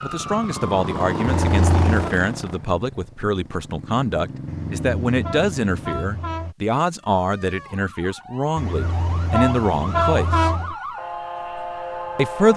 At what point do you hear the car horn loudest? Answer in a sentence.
The loudest moment of the car horn is at 10 seconds.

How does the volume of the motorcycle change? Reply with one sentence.
The loudness of the motorcycle goes down, then up.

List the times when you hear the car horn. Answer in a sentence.
The car horn can be heard from 1.2 to 2.1 s, from 4.5 to 6.5 s and from 8.6 to 10.8 s.